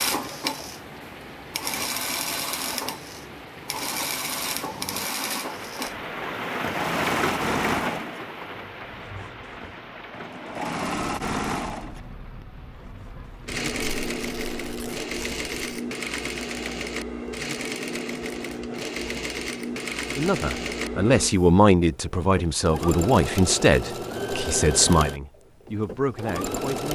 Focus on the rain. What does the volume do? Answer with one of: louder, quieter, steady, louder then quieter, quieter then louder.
louder then quieter.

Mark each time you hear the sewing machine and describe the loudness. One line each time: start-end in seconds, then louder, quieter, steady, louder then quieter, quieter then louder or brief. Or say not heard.
0.0-26.9 steady.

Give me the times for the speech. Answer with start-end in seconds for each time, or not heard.
20.1-26.9.